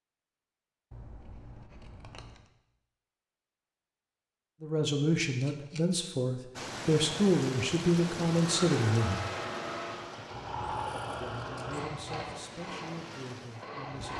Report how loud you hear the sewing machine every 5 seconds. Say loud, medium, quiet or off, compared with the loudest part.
off, loud, loud.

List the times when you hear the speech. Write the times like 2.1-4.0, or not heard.
4.6-9.2, 11.2-14.1.